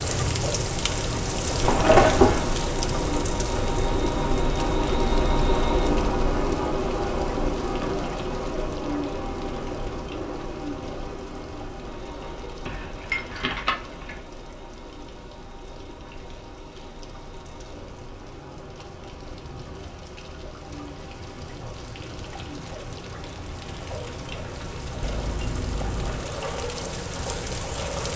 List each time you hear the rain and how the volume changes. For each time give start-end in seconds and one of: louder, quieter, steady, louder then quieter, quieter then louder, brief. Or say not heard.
0.0-28.1 quieter then louder.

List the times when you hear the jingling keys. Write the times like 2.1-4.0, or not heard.
1.6-2.5, 12.7-14.2, 25.0-26.2.